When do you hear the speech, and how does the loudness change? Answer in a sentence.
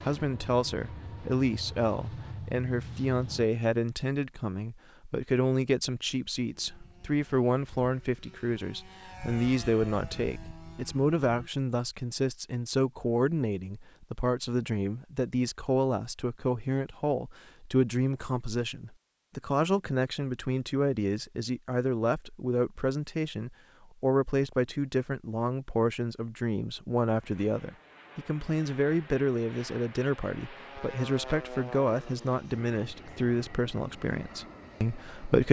You can hear the speech from 0.0 to 35.4 s, at a steady volume.